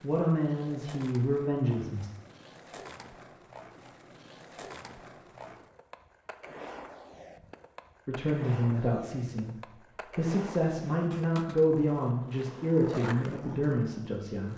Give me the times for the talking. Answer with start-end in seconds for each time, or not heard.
0.0-2.1, 8.1-14.5.